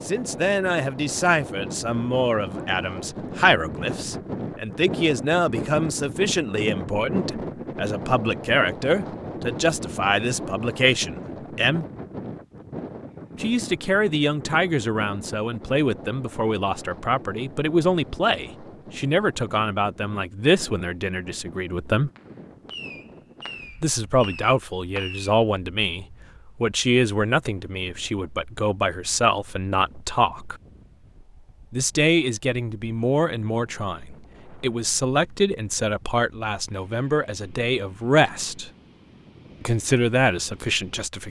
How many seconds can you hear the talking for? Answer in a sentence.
You can hear the talking for 36 seconds altogether.